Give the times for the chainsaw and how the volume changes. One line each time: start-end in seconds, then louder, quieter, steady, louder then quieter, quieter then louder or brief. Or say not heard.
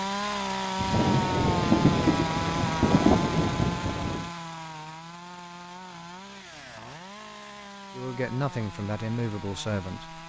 0.0-10.2 quieter.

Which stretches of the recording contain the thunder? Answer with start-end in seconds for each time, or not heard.
0.8-4.3.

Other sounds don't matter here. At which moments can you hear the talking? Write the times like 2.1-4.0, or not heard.
7.9-10.2.